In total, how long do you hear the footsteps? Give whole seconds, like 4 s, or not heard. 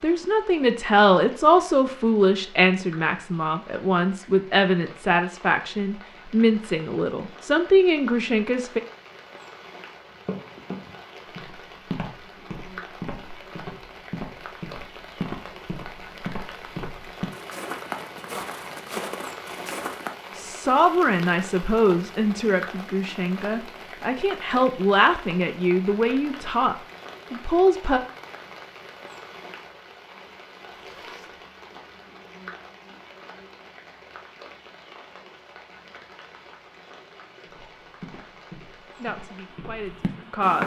13 s.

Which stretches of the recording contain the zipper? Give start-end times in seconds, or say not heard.
30.7-31.4.